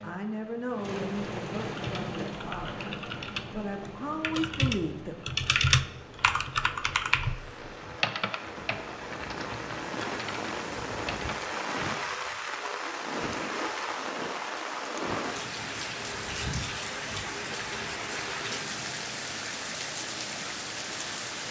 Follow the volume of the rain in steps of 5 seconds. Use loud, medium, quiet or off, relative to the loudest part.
medium, medium, loud, loud, loud.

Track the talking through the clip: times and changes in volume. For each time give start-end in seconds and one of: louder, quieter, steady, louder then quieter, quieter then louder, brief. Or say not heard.
0.0-5.2 quieter then louder.